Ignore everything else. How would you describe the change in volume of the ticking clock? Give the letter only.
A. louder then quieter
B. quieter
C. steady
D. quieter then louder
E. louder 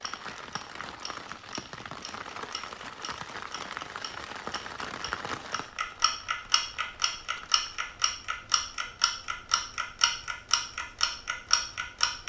E.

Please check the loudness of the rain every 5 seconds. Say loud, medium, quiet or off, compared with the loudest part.
loud, medium, quiet.